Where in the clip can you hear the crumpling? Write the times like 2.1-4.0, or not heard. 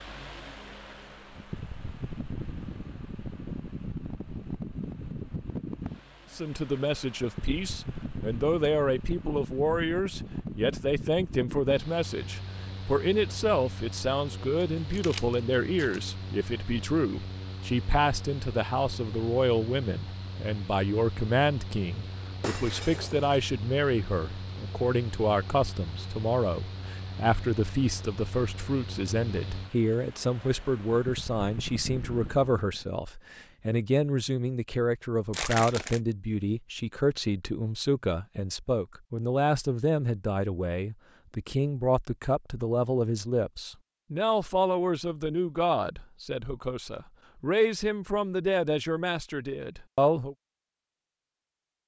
14.6-16.1, 35.3-36.0.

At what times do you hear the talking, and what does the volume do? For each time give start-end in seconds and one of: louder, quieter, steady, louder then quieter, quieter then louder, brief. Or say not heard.
6.3-50.4 steady.